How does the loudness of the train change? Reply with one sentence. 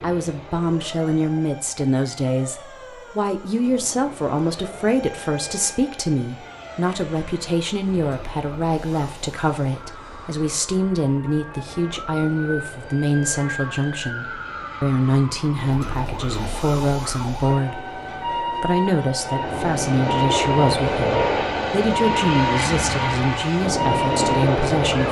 The loudness of the train goes up.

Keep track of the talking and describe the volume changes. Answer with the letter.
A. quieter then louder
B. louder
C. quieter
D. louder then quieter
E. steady
E.